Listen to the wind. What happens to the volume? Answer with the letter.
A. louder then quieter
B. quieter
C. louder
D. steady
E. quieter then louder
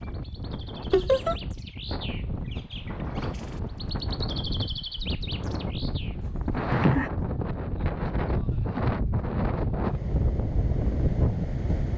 C.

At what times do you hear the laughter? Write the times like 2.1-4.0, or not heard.
0.9-1.4, 6.2-7.1.